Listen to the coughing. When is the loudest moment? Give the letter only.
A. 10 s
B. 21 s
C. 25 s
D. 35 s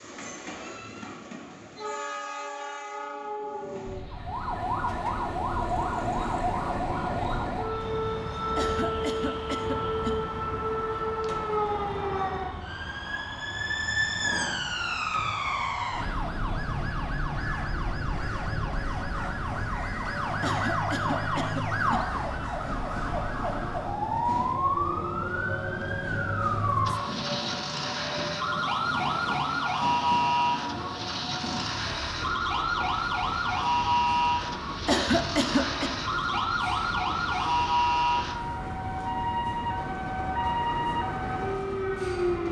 D.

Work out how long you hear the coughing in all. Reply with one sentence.
The coughing can be heard for 4 seconds in total.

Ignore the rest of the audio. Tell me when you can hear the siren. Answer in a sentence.
You can hear the siren from 4.1 to 42.4 s.